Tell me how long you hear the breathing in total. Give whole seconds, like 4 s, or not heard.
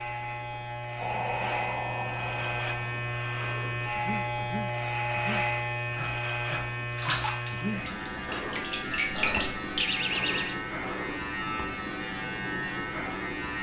10 s.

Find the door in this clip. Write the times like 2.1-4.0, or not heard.
9.8-10.6.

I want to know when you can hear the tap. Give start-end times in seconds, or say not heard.
6.9-9.9.